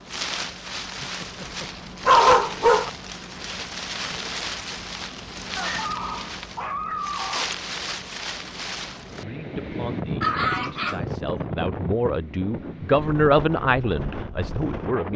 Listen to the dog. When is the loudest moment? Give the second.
2 s.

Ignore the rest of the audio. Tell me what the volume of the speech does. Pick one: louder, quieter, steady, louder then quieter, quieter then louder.
louder then quieter.